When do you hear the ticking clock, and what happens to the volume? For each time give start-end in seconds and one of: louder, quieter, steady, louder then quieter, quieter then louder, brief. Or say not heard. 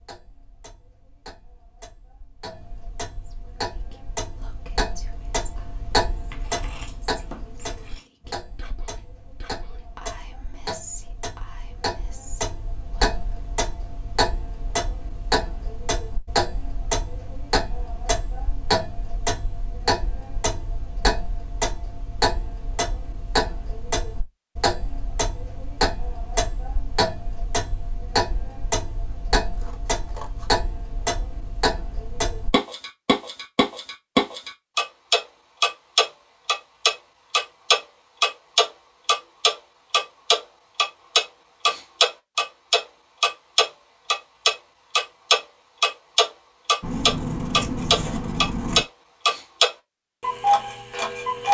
0.0-51.5 louder.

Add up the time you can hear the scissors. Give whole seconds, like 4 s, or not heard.
5 s.